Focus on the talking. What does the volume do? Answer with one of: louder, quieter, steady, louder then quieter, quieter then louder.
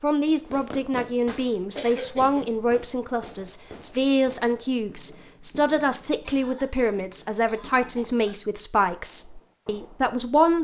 steady.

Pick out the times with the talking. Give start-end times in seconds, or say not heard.
0.0-10.6.